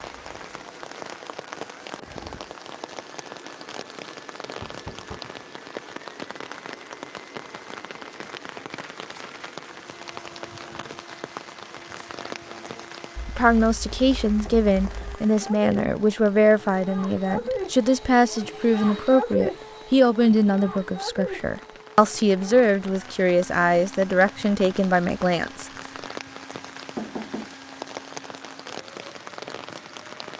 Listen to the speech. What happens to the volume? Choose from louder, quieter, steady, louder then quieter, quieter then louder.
steady.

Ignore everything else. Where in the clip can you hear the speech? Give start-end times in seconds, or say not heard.
13.2-25.7.